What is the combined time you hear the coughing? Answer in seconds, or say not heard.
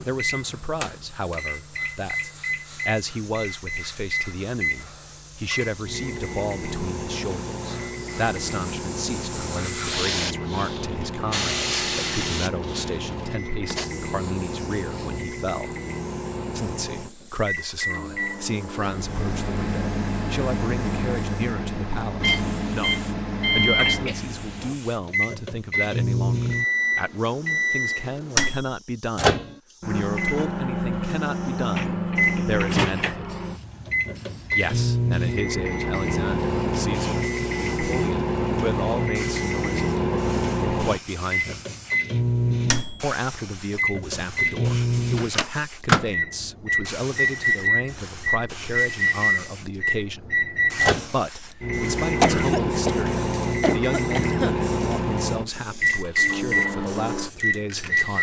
3 s.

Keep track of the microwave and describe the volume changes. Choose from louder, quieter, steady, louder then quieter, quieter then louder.
louder.